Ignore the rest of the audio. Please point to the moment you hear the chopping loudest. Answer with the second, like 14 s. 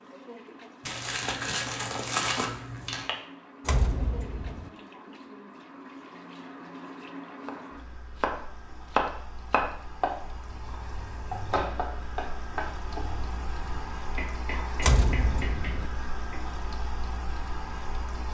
9 s.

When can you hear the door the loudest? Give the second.
15 s.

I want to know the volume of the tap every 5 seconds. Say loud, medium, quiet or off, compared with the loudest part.
medium, medium, loud, loud.